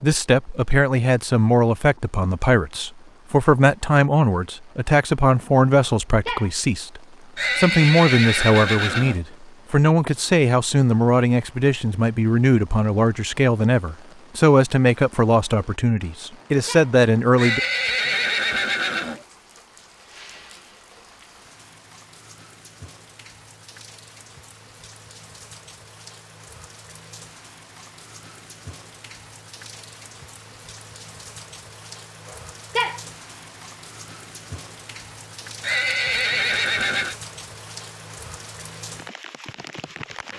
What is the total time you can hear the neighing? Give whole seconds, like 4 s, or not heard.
5 s.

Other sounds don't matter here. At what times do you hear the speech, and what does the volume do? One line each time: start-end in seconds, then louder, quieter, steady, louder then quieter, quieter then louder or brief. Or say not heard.
0.0-17.6 steady.